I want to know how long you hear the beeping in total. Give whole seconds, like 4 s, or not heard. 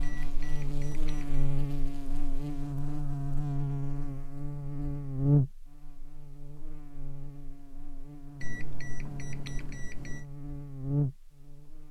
3 s.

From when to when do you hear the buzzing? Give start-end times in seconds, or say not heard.
0.0-11.8.